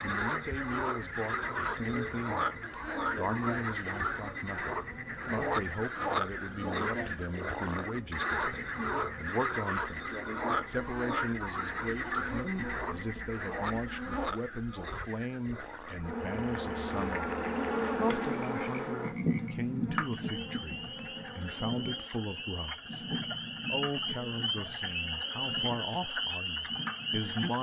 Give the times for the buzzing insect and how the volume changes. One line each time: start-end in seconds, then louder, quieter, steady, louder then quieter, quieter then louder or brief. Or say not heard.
0.2-27.5 louder then quieter.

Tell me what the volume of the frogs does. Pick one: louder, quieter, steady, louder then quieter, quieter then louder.
quieter then louder.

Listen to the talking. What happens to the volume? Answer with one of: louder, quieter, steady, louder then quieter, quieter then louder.
steady.